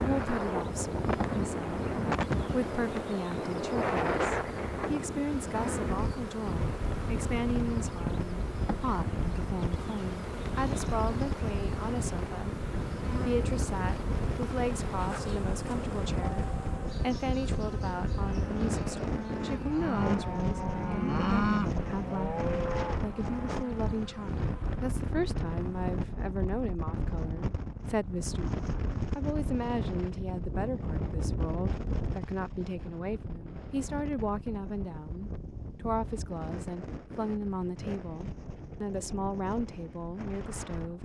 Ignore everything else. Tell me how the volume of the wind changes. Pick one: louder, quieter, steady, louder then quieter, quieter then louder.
quieter.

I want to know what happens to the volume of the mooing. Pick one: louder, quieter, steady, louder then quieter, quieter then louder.
louder then quieter.